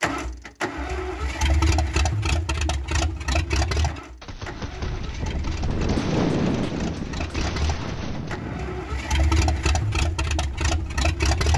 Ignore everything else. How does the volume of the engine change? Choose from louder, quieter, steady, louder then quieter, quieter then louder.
quieter then louder.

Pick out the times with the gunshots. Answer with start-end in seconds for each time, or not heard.
4.2-8.4.